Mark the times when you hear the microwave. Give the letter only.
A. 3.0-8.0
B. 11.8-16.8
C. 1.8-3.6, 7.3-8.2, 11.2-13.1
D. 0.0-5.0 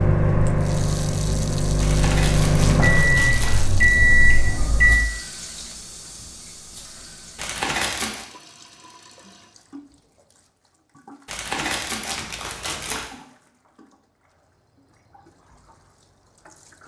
D.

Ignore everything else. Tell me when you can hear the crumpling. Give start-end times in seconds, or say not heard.
1.8-3.6, 7.3-8.2, 11.2-13.1.